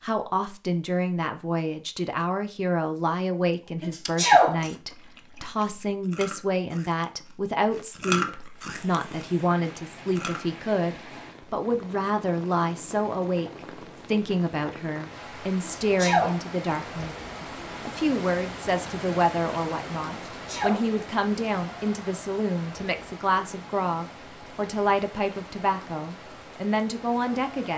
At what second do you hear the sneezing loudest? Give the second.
4 s.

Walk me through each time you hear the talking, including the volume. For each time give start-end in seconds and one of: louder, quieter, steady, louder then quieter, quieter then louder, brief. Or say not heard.
0.0-27.7 steady.